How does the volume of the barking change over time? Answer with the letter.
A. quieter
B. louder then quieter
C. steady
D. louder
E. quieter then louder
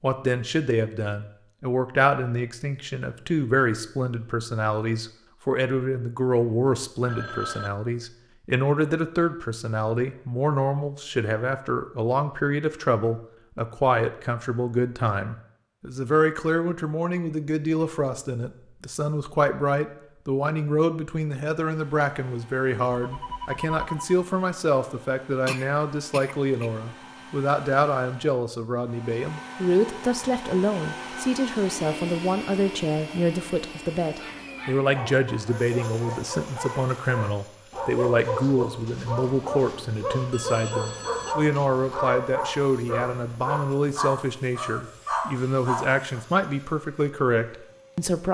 D.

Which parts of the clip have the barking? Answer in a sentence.
You can hear the barking from 34.1 to 46.2 s.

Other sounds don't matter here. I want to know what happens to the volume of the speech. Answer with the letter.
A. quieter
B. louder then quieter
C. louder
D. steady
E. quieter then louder
D.